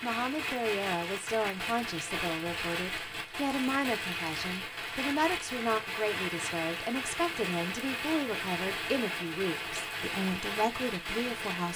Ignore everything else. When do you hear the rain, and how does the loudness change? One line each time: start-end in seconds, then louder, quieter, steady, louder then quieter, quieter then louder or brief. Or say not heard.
0.0-11.7 steady.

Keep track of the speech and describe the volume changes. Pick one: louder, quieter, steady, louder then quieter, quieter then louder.
steady.